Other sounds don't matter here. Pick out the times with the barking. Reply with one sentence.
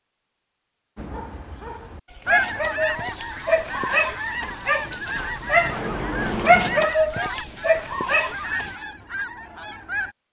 The barking can be heard from 0.9 to 8.8 s.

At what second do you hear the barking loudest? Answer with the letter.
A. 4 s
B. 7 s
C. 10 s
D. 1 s
B.